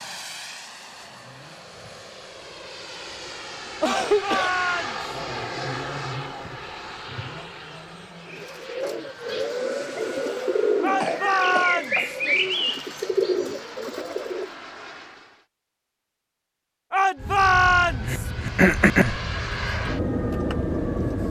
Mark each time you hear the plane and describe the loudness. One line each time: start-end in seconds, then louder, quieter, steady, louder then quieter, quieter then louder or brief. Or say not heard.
0.0-15.4 louder then quieter
17.1-21.2 louder.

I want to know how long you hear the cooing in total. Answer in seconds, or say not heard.
6 s.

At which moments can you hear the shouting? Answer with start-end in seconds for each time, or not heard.
3.8-5.0, 10.8-12.1, 16.9-18.3.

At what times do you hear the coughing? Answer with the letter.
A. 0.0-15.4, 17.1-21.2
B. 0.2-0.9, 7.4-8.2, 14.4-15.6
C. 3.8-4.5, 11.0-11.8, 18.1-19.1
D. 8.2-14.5
C.